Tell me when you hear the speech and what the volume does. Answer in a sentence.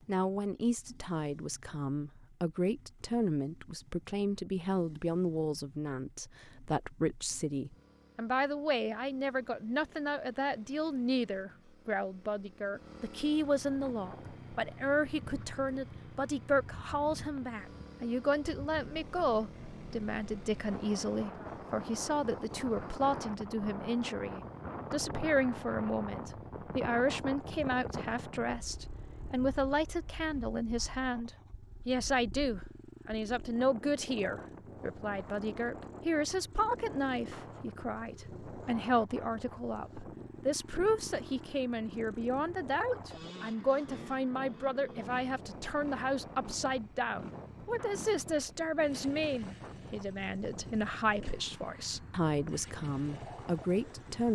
You can hear the speech from 0.1 to 54.3 s, at a steady volume.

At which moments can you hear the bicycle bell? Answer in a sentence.
You can't hear the bicycle bell here.